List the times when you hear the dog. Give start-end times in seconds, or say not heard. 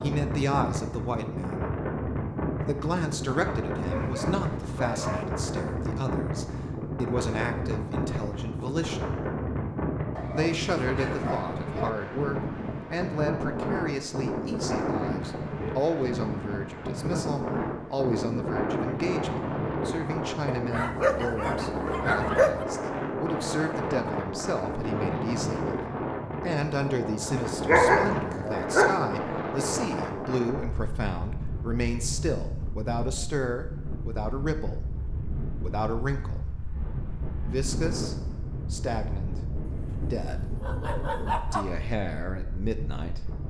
3.9-5.2, 10.2-11.9, 20.4-22.6, 27.2-28.9, 39.7-41.6.